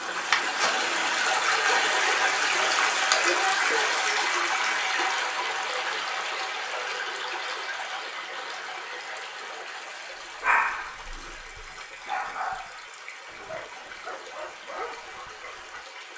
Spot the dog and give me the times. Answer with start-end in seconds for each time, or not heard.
10.4-15.8.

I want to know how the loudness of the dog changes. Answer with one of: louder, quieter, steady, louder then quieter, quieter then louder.
louder then quieter.